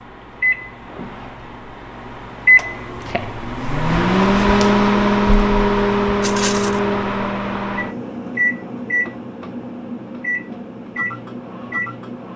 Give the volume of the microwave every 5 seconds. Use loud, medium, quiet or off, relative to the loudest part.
loud, loud, medium.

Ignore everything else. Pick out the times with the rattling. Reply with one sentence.
The rattling can be heard from 6.2 to 6.8 s.